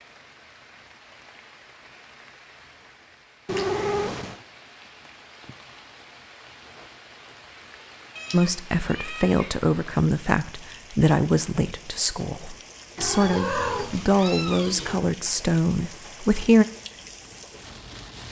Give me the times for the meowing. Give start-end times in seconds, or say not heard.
3.5-4.3, 8.2-9.5, 12.9-15.0.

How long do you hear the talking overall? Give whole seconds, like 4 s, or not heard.
8 s.